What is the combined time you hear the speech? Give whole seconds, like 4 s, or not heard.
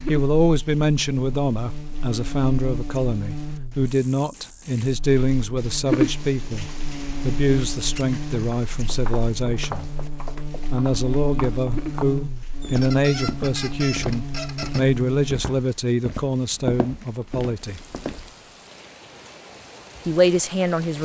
18 s.